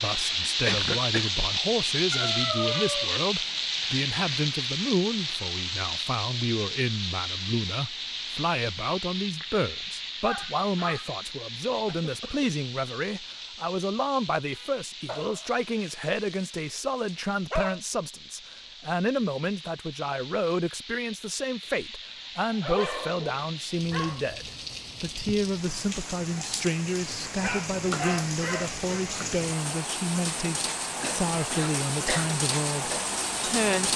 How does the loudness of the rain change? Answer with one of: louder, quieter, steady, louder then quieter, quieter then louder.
quieter then louder.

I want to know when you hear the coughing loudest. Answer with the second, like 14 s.
1 s.